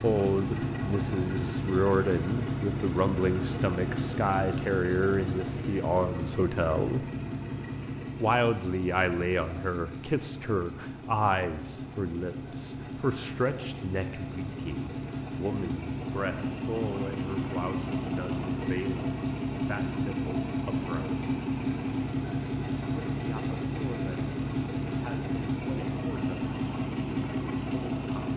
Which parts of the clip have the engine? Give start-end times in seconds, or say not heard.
0.0-28.3.